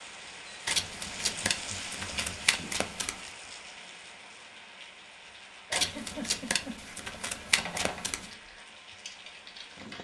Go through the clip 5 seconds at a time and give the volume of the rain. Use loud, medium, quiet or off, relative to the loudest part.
loud, medium.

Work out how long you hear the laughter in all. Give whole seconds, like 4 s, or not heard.
3 s.